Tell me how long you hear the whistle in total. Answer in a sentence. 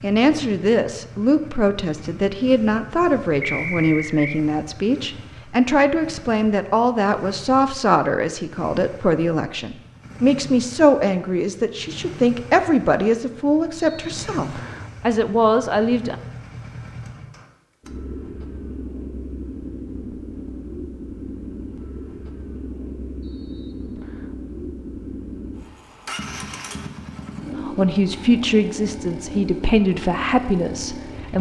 The whistle can be heard for 3 seconds in total.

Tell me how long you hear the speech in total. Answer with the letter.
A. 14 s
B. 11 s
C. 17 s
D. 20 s
D.